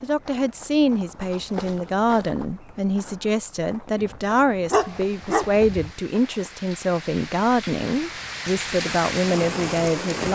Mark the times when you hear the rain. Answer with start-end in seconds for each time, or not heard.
4.7-10.3.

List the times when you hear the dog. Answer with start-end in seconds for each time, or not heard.
4.0-5.8.